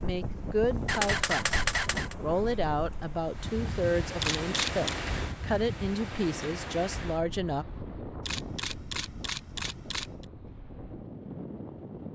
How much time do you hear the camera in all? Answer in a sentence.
You can hear the camera for 4 seconds altogether.